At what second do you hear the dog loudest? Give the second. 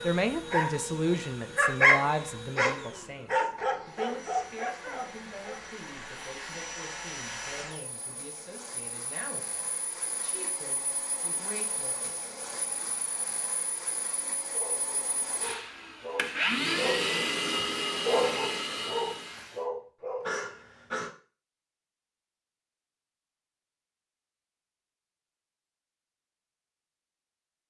2 s.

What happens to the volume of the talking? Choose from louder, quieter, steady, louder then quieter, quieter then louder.
quieter.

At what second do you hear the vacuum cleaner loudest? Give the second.
17 s.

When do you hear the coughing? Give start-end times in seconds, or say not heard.
20.2-21.1.